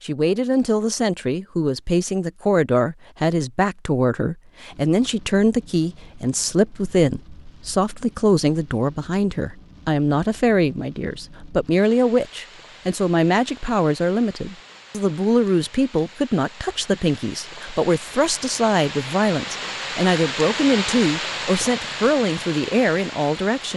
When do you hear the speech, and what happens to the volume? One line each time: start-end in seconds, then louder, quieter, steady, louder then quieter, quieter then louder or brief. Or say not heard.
0.0-23.7 steady.